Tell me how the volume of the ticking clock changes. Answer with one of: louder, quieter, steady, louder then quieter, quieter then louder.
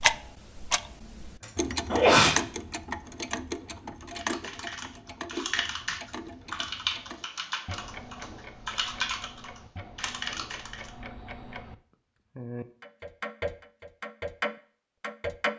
quieter then louder.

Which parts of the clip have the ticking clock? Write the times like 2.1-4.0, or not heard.
0.0-11.8, 12.3-15.5.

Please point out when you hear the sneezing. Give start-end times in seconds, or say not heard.
1.4-2.4.